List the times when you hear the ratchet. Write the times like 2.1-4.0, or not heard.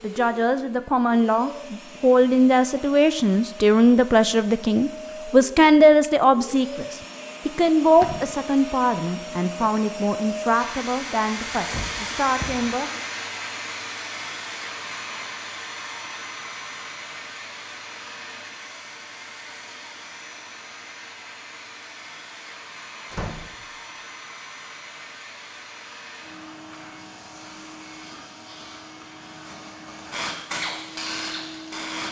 30.1-32.0.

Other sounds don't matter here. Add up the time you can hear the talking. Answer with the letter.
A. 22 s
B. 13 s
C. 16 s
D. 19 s
B.